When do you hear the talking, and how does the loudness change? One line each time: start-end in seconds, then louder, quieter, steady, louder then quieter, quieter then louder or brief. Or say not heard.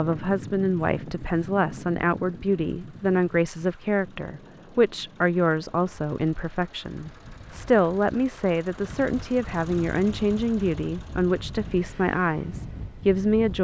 0.0-13.6 steady.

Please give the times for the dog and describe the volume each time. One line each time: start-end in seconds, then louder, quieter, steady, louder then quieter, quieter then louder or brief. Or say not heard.
not heard.